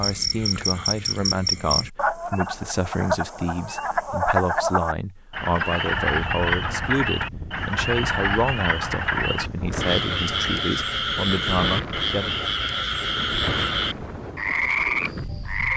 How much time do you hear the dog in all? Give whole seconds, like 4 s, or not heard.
not heard.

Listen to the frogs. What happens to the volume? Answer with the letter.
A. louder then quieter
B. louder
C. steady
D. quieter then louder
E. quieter
C.